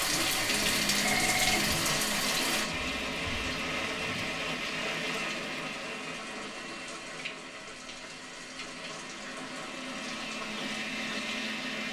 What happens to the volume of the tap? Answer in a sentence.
The volume of the tap goes down.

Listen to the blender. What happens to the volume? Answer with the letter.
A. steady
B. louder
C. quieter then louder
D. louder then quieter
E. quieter
C.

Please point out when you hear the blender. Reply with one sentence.
The blender can be heard from 0.0 to 11.8 s.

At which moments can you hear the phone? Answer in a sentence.
You can hear the phone from 0.1 to 2.0 s.